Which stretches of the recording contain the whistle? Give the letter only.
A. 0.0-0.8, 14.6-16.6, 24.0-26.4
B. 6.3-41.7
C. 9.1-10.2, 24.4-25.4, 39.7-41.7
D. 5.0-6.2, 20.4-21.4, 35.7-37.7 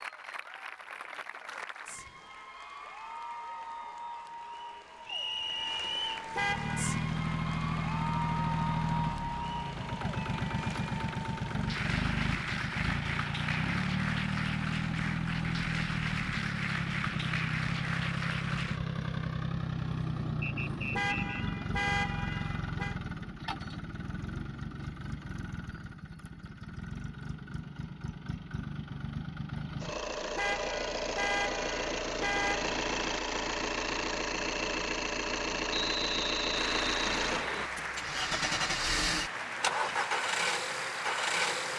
D.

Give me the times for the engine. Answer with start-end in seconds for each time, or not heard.
6.3-41.7.